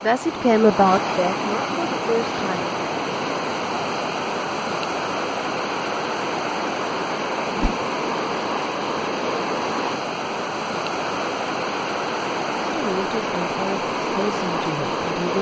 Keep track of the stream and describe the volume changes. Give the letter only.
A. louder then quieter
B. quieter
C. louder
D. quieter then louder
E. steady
E.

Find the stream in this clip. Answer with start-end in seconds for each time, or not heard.
0.0-15.3.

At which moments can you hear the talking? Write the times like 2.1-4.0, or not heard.
0.0-2.8, 12.7-15.3.